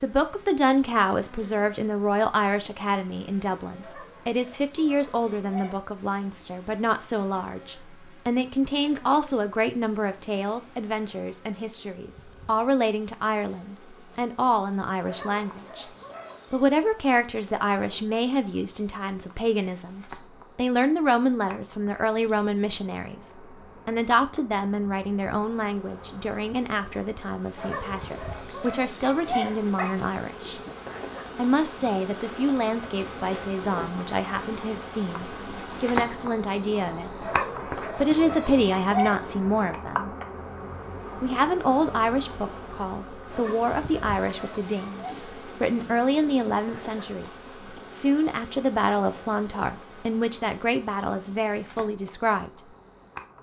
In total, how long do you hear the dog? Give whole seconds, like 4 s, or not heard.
10 s.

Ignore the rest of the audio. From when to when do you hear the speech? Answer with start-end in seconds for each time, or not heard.
0.0-15.8, 16.5-30.6, 31.4-37.1, 38.0-40.1, 41.2-47.3, 47.9-52.5.